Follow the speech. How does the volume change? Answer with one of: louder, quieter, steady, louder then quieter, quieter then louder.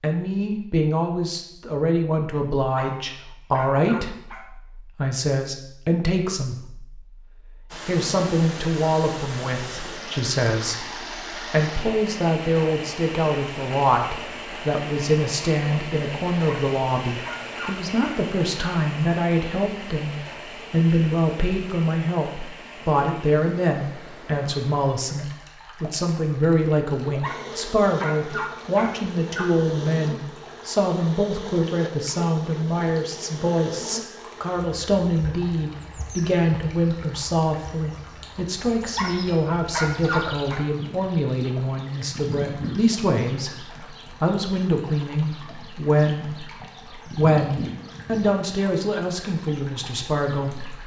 steady.